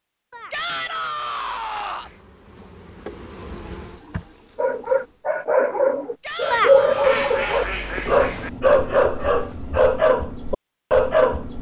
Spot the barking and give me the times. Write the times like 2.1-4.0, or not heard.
4.5-11.5.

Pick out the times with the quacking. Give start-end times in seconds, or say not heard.
0.3-2.3, 6.5-8.5.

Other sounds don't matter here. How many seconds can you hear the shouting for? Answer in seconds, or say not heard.
3 s.